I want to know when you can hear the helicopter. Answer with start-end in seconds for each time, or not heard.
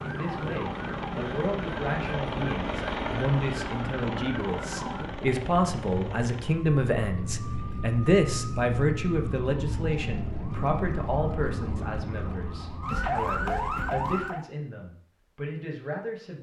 0.0-6.6.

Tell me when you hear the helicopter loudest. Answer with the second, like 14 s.
3 s.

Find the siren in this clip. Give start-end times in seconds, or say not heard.
0.0-14.4.